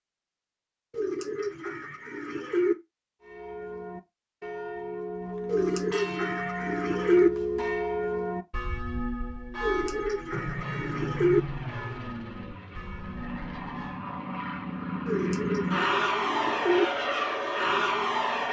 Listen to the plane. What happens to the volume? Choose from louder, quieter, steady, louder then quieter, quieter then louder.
quieter then louder.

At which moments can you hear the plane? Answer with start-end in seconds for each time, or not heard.
10.3-18.4.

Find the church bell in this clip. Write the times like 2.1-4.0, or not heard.
3.2-14.0.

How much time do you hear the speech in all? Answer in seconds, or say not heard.
not heard.